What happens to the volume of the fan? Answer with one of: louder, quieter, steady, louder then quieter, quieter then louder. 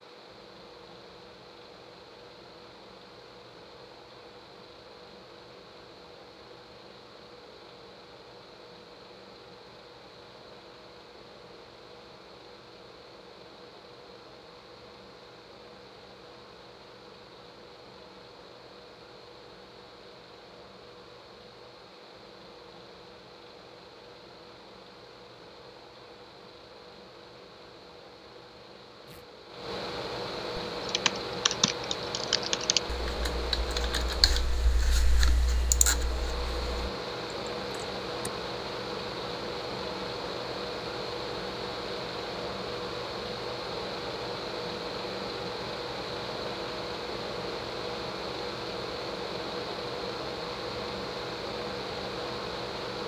louder.